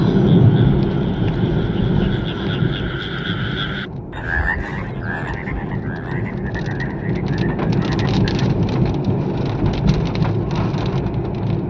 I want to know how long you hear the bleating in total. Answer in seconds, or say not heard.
not heard.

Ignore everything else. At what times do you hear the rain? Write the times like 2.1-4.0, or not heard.
0.0-11.6.